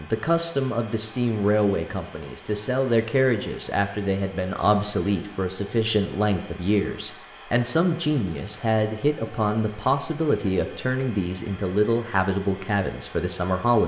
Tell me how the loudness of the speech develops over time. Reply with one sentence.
The volume of the speech stays about the same.